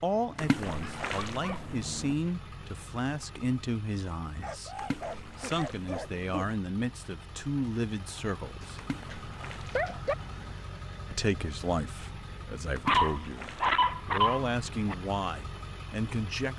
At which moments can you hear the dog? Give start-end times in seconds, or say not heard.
0.8-1.6, 4.4-6.5, 8.6-10.2, 12.8-14.9.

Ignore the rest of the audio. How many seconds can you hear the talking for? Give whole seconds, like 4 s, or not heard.
14 s.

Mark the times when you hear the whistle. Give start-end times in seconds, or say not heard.
not heard.